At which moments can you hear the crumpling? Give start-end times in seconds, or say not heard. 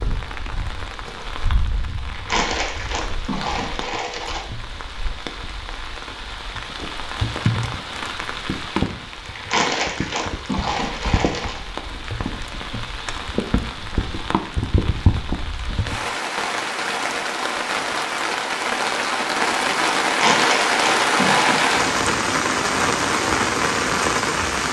2.0-4.5, 9.3-11.6, 20.1-21.8.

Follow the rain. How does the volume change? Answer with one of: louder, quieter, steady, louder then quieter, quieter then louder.
louder.